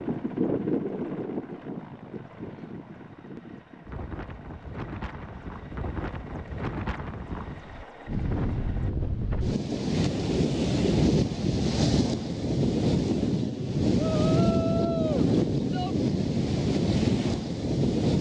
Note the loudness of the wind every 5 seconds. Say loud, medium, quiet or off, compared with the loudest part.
medium, medium, loud, loud.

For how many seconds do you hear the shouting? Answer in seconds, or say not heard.
2 s.